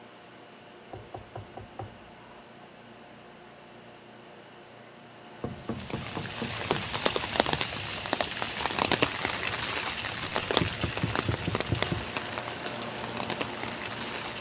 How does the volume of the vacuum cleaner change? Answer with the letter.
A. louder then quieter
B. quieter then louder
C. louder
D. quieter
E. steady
C.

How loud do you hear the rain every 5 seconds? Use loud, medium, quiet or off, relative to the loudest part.
off, loud, loud.